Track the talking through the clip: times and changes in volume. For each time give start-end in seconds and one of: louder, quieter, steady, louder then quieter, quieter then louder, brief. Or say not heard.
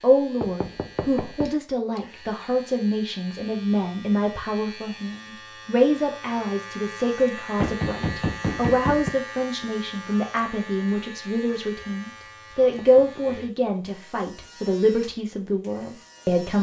0.0-16.5 steady.